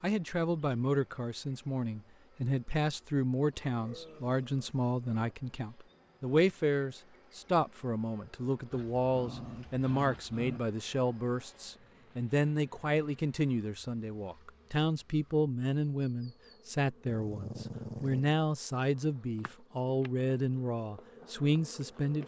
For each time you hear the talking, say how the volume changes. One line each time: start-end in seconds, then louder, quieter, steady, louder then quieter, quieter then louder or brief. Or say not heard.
0.0-22.2 steady.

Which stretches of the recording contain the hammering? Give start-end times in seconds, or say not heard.
not heard.